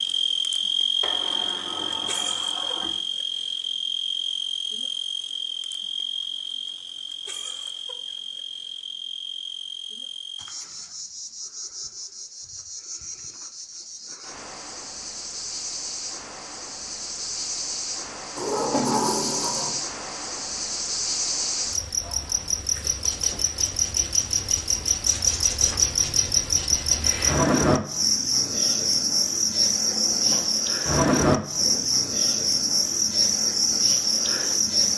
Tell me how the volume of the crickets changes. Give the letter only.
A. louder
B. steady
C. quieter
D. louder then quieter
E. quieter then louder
E.